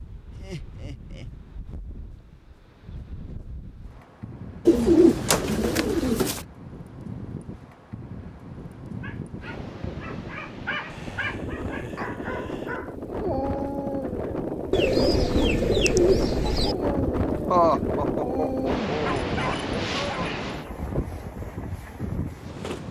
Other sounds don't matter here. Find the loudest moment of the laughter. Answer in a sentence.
The volume of the laughter peaks at 18 seconds.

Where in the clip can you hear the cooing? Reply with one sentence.
The cooing can be heard from 4.7 to 6.5 s and from 14.7 to 16.8 s.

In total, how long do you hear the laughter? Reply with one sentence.
The laughter can be heard for 5 seconds in total.